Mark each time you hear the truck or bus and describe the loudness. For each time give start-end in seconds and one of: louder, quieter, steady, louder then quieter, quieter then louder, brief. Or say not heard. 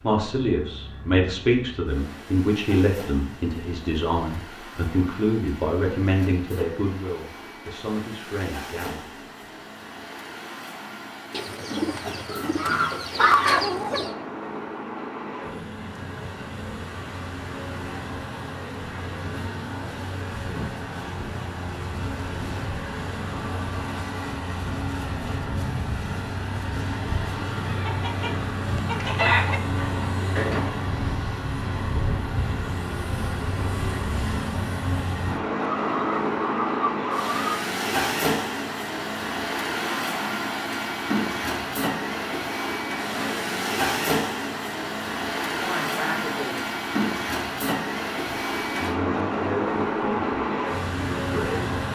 0.0-51.8 louder.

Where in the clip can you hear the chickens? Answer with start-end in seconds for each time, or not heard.
11.3-14.2, 27.7-29.6, 35.6-37.5.